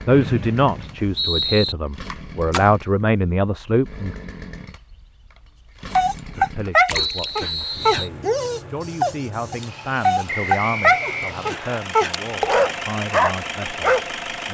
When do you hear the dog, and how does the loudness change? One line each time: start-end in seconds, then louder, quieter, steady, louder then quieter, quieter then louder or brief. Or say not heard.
5.9-14.1 steady.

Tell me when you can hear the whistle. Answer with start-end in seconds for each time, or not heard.
0.1-1.8, 6.9-8.1, 10.2-11.8.